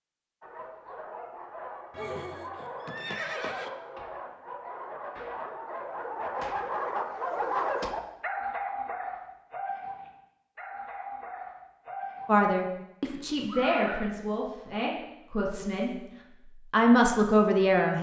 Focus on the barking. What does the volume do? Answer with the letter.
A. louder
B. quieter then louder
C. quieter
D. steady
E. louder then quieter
E.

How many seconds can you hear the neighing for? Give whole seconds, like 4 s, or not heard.
3 s.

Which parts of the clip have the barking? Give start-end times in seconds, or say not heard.
0.4-12.3.